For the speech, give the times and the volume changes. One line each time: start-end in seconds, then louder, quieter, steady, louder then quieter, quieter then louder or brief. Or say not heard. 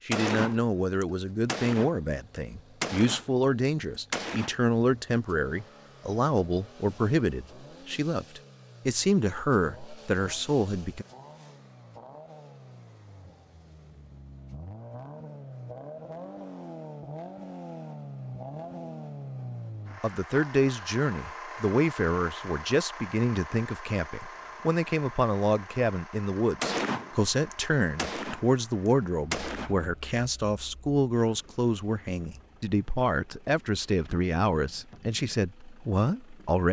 0.1-11.1 steady
20.0-36.6 steady.